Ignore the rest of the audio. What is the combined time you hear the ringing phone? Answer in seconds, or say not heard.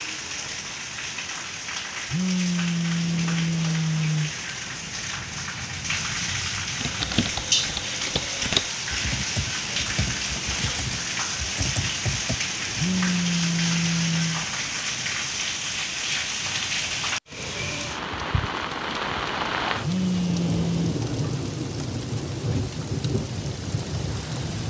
5 s.